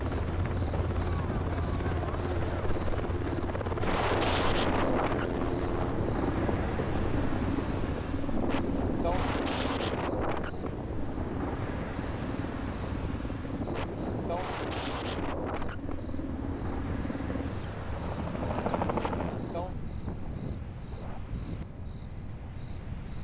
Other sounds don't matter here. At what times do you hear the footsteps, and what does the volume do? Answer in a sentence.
The footsteps can't be heard in this clip.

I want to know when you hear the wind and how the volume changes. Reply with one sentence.
You can hear the wind from 3.8 to 23.1 s, getting quieter.